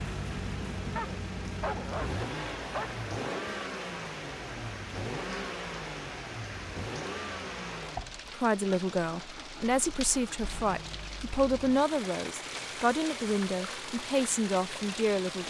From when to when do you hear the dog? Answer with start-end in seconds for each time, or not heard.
0.9-3.0.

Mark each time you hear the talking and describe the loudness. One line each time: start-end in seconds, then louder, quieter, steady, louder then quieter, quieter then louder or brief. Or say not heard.
8.3-15.4 steady.